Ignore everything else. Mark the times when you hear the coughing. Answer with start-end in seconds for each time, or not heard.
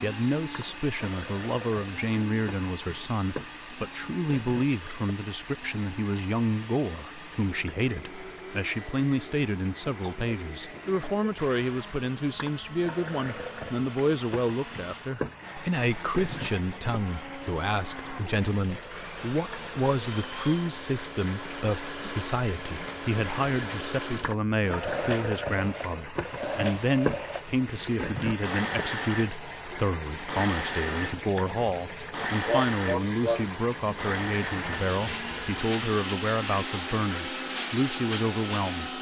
9.8-11.4, 32.5-33.5.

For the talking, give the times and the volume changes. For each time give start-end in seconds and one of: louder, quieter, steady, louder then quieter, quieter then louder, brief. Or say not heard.
0.0-38.9 steady.